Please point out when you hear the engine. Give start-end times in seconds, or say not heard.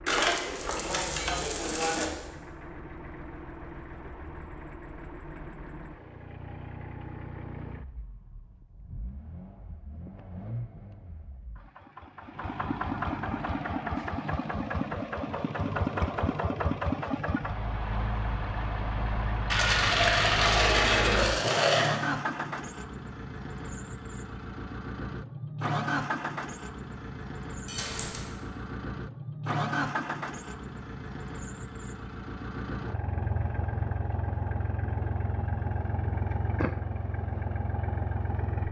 0.0-38.6.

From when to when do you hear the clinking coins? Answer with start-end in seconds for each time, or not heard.
0.1-2.0, 19.5-22.0, 27.6-28.3.